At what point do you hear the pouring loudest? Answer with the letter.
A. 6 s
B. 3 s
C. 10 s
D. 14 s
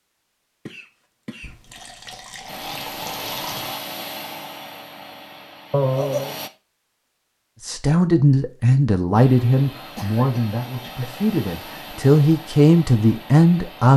B.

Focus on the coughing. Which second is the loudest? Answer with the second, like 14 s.
6 s.